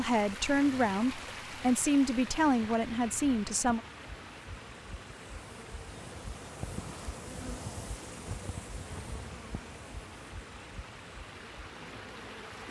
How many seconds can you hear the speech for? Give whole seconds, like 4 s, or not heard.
4 s.